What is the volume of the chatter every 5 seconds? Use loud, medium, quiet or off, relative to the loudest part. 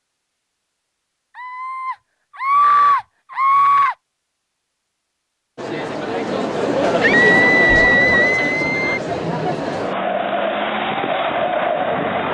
off, loud, loud.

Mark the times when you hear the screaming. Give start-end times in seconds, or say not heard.
1.4-4.0, 7.0-9.0.